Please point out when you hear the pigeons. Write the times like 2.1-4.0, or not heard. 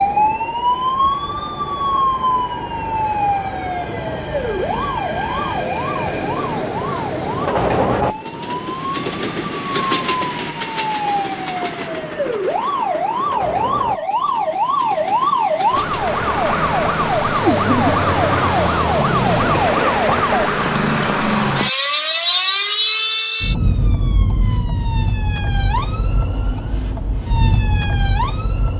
not heard.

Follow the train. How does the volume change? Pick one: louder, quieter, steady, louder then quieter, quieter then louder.
louder then quieter.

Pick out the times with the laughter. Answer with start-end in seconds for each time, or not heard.
17.4-18.0.